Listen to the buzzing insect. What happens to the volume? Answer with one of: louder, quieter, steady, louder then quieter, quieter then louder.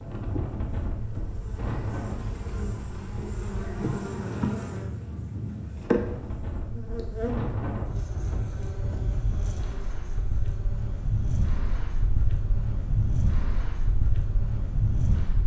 louder then quieter.